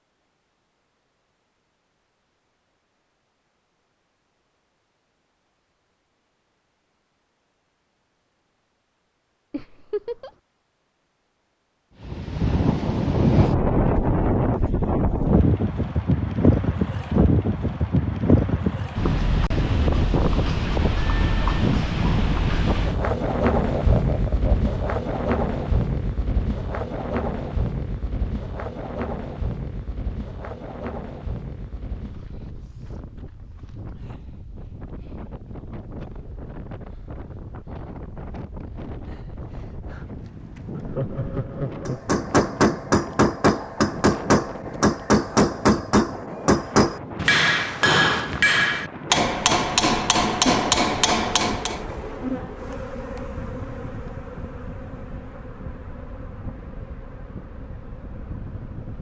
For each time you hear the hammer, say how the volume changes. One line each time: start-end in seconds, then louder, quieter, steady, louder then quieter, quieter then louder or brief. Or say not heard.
41.9-51.8 steady.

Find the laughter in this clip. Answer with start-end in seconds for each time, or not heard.
9.5-10.3, 23.8-24.9, 40.7-42.1.